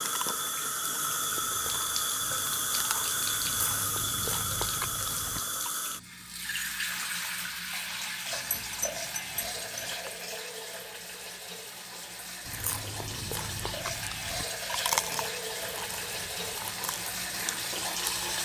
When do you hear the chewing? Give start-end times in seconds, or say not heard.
0.0-5.7, 12.4-18.3.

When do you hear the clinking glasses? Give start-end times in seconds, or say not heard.
8.3-9.9.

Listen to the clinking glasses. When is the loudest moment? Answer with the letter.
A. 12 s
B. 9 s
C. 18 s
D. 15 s
B.